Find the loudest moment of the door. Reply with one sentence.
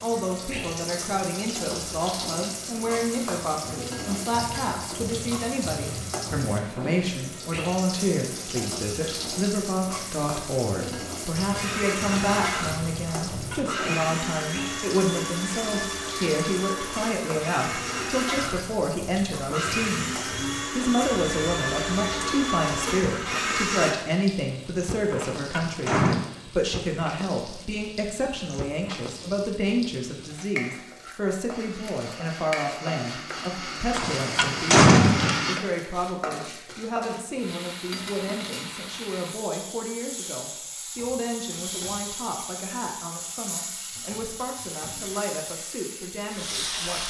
The volume of the door peaks at 35 seconds.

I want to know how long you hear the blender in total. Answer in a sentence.
You can hear the blender for 17 seconds altogether.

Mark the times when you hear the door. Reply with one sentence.
You can hear the door from 13.3 to 13.8 s, from 25.1 to 26.2 s and from 34.0 to 35.5 s.